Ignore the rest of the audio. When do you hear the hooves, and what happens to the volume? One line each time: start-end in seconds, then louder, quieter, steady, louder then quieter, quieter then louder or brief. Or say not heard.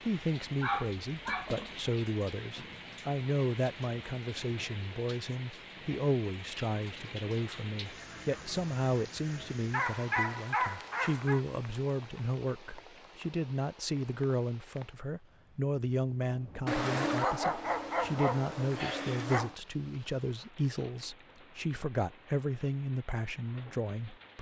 not heard.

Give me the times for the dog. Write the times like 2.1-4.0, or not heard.
0.6-1.8, 9.7-11.4, 16.6-19.6.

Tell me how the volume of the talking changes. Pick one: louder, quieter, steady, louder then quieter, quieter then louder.
steady.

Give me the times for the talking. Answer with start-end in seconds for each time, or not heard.
0.0-24.3.